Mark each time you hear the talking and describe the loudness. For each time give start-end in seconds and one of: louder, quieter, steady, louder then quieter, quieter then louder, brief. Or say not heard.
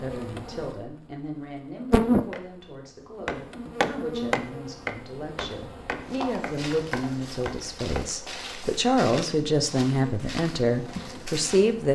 0.0-11.9 louder.